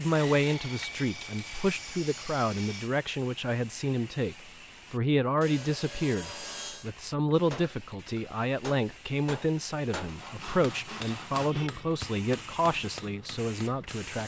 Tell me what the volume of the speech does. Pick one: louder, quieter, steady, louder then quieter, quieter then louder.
steady.